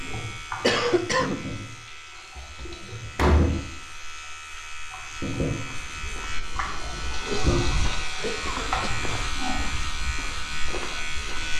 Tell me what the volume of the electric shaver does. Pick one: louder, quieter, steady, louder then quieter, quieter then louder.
louder.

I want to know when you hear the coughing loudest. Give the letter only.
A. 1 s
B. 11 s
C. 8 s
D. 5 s
A.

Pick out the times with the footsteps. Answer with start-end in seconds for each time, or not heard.
5.7-11.5.